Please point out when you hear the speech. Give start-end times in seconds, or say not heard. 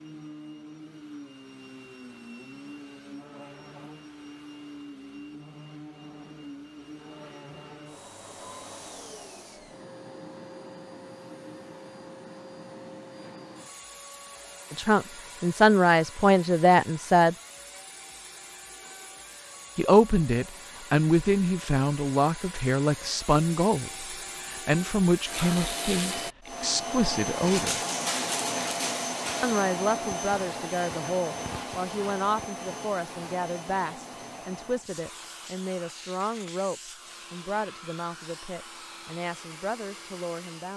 14.7-17.4, 19.8-27.9, 29.4-40.7.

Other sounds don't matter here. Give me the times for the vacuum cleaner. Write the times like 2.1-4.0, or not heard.
0.0-40.7.